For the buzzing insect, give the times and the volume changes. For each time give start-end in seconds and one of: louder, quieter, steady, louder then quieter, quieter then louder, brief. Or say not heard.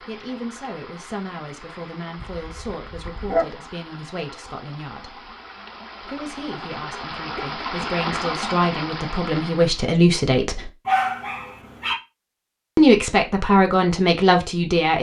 not heard.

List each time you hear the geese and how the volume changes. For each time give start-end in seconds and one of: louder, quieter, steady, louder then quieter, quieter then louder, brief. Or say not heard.
not heard.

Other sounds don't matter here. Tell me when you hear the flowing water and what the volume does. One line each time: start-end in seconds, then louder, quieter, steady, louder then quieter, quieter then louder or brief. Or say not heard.
0.0-9.9 louder.